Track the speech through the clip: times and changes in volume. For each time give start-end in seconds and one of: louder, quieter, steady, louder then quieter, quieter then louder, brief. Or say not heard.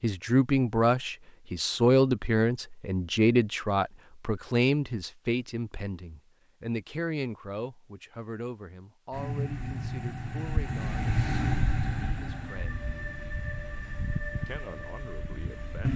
0.0-12.8 quieter
14.4-15.9 brief.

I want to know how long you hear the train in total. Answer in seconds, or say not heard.
7 s.